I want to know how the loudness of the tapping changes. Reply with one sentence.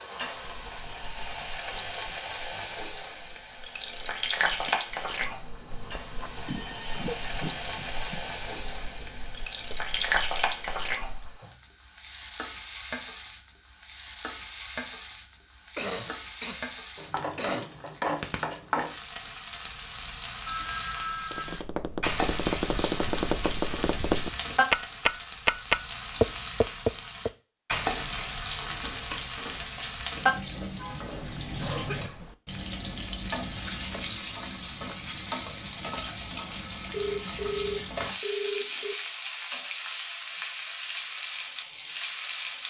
The volume of the tapping goes up.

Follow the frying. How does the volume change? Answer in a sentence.
The volume of the frying stays about the same.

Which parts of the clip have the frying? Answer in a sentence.
The frying can be heard from 0.0 to 42.6 s.